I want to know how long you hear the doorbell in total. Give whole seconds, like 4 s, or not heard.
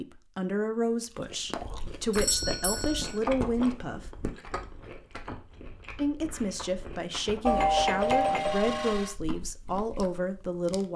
3 s.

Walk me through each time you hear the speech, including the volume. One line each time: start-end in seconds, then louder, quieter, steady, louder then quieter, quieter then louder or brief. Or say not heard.
0.0-4.0 quieter then louder
6.0-10.9 steady.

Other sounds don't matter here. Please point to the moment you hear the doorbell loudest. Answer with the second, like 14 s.
8 s.